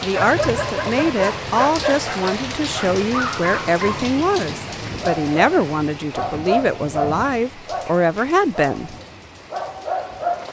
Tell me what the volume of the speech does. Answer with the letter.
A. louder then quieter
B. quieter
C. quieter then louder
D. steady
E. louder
D.